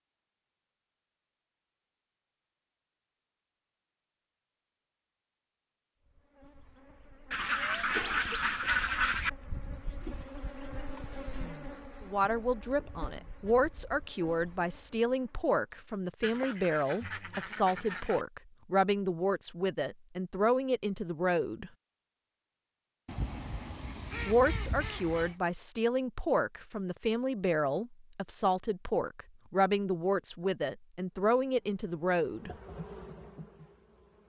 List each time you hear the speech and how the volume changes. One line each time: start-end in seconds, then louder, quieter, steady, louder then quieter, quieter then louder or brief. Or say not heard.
12.0-21.7 steady
24.2-32.5 steady.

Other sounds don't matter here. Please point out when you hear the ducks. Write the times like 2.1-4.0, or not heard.
7.3-9.3, 16.2-18.2, 23.1-25.4.